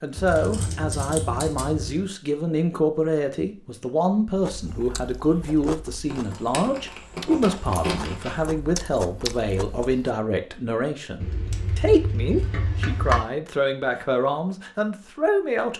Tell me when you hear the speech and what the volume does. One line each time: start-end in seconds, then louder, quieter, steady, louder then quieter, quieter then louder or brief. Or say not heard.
0.0-15.7 steady.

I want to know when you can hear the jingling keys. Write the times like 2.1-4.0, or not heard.
0.1-2.0, 6.1-8.4, 11.2-13.2.